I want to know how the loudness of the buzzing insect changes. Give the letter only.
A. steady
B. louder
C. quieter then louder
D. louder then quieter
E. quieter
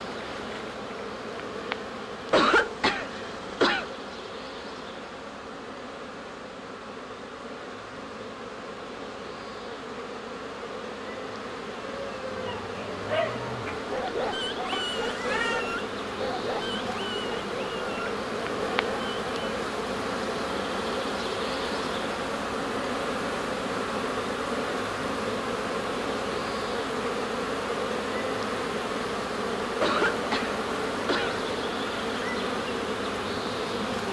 B.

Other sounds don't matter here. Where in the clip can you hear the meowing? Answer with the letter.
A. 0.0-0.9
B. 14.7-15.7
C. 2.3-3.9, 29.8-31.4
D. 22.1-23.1
B.